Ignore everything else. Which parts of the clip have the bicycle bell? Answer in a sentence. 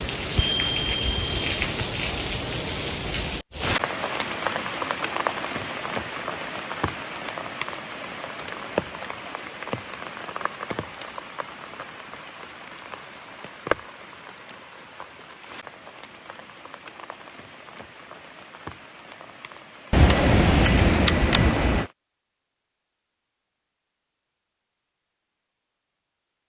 The bicycle bell can be heard from 0.3 to 1.9 s and from 19.9 to 21.9 s.